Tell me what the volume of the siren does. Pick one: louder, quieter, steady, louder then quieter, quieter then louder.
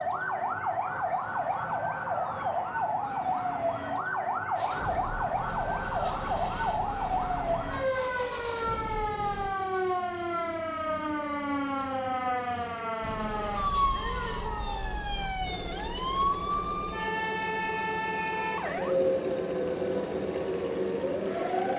steady.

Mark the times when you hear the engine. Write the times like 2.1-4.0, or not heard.
4.5-9.5, 13.0-21.7.